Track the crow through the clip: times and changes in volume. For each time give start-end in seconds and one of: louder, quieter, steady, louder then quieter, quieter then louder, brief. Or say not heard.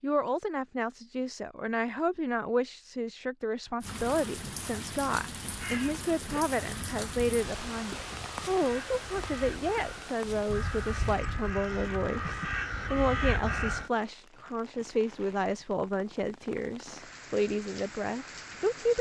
5.5-13.8 louder.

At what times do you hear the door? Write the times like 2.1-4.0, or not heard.
not heard.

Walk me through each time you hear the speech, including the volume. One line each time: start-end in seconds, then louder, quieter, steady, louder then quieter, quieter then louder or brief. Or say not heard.
0.0-18.9 steady.